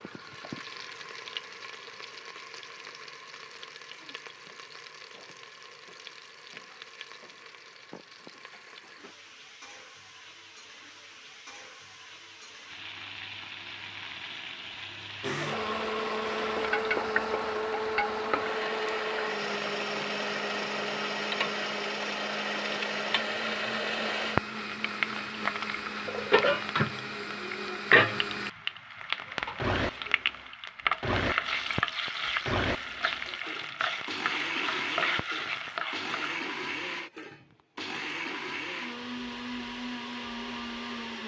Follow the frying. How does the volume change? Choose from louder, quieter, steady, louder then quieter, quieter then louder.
louder.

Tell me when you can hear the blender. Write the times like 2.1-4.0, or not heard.
15.2-28.5, 29.4-41.2.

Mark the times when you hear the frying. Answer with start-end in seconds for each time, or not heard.
0.0-36.5.